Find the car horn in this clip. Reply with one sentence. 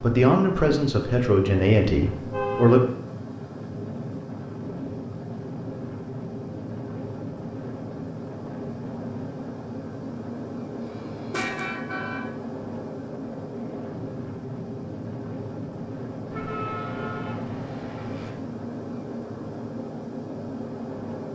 The car horn can be heard from 2.1 to 2.8 s, from 10.8 to 12.2 s and from 16.3 to 18.3 s.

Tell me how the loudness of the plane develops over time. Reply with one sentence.
The loudness of the plane stays about the same.